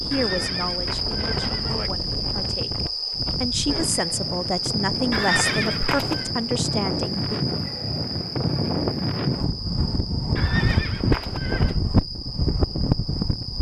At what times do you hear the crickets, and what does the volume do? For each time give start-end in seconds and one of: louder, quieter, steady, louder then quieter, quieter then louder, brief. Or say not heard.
0.0-13.5 quieter.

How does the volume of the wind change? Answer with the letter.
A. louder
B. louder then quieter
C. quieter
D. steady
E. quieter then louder
A.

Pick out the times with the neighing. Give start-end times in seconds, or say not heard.
0.1-1.9, 5.1-6.3, 10.3-11.8.